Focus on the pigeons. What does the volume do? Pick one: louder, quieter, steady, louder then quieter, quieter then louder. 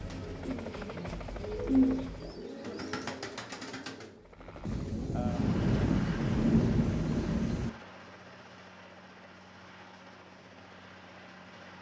louder then quieter.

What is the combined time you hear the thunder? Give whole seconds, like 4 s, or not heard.
3 s.